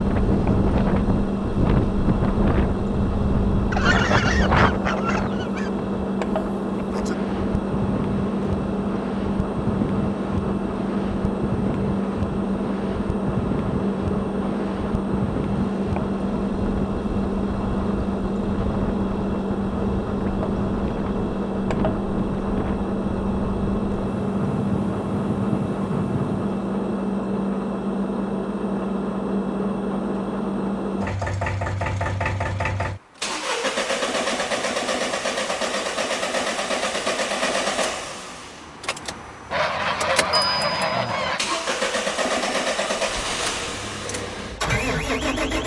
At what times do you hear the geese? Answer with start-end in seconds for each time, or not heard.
3.7-5.7, 39.5-41.4.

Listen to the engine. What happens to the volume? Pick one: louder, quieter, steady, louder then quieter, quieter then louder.
steady.